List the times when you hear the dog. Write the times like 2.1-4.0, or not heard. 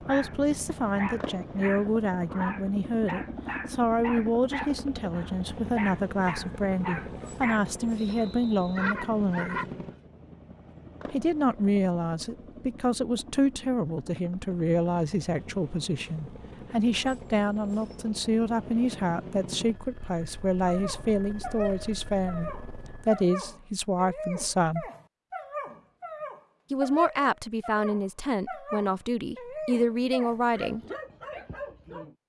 0.0-9.7, 20.6-32.1.